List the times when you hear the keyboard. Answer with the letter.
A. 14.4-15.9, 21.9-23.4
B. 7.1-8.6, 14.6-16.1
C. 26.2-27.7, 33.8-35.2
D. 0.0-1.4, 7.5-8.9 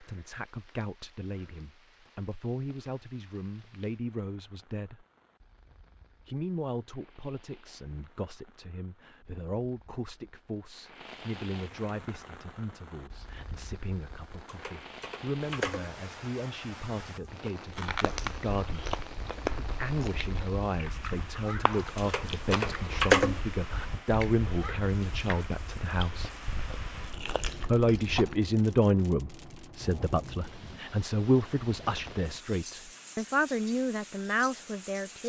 A.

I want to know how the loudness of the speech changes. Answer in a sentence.
The volume of the speech goes up.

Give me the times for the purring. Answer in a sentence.
The purring can't be heard in this clip.